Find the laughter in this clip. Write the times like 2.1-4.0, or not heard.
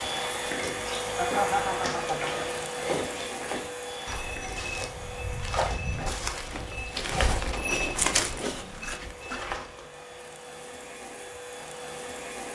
1.1-2.3.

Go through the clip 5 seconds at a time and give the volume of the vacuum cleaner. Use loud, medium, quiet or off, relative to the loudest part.
loud, medium, medium.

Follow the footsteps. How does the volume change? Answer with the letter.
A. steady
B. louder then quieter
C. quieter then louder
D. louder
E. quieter
D.